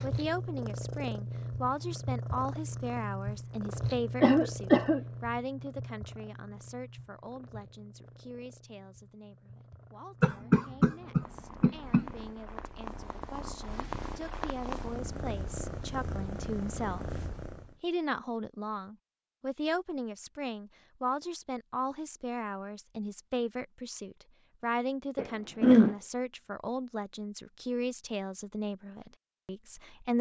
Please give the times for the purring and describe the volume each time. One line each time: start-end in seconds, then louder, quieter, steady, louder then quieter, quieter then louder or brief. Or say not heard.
0.0-17.8 quieter then louder.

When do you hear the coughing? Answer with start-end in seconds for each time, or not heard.
4.2-5.0, 10.2-12.1, 25.1-25.9.